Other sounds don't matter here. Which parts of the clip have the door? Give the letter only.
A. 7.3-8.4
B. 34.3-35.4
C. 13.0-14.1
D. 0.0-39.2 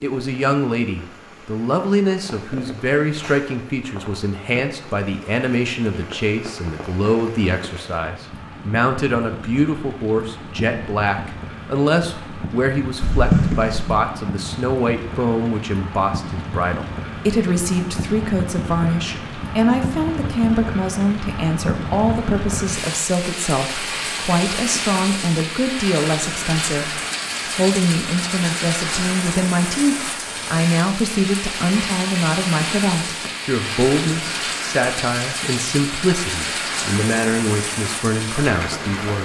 C.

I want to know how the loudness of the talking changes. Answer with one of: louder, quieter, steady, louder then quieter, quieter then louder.
steady.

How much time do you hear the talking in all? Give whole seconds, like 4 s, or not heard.
39 s.